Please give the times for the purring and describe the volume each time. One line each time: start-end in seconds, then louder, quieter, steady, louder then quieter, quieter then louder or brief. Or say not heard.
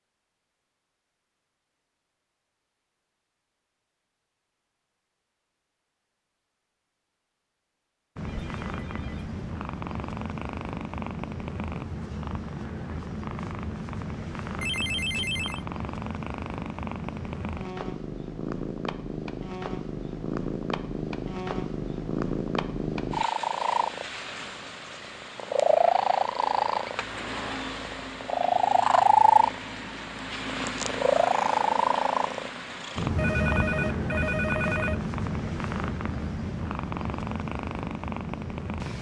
8.2-38.9 louder then quieter.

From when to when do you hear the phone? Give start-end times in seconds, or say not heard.
8.2-9.2, 14.6-15.7, 33.1-35.0.